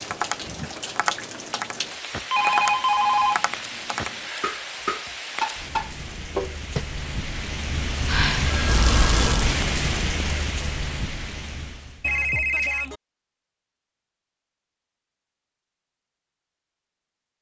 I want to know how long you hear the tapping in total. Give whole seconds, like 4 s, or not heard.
7 s.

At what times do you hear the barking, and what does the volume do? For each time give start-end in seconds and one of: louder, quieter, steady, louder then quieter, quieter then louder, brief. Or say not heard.
not heard.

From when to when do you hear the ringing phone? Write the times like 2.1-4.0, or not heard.
2.3-3.5, 8.1-9.4, 12.0-13.0.